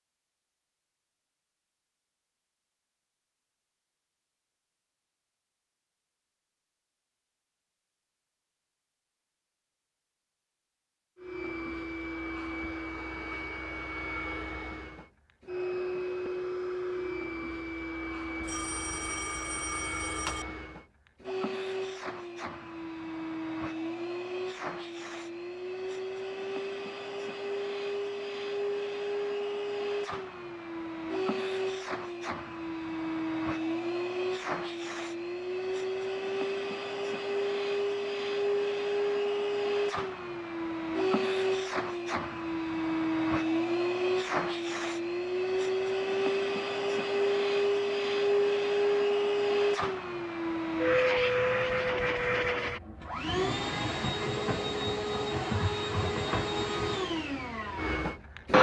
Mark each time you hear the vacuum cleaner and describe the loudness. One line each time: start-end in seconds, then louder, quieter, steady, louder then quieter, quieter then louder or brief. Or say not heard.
11.2-58.5 louder.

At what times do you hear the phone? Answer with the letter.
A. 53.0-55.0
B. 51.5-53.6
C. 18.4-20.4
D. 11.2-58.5
C.